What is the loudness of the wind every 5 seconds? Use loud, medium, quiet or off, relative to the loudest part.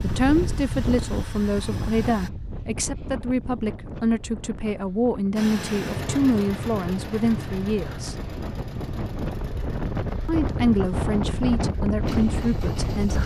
medium, medium, loud.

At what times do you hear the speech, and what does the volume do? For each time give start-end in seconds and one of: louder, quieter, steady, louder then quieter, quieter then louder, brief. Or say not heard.
0.0-8.2 steady
10.2-13.2 brief.